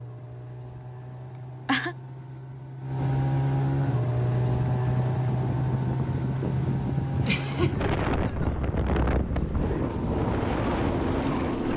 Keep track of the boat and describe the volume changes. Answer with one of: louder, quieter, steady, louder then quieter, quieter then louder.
louder then quieter.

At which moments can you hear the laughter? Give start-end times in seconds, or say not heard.
1.4-1.9, 7.2-8.0.